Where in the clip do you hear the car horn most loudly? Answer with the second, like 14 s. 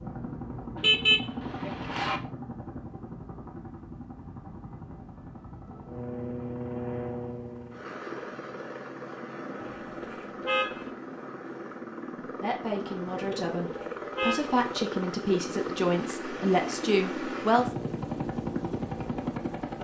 1 s.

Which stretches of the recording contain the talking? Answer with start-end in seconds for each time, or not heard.
12.2-17.7.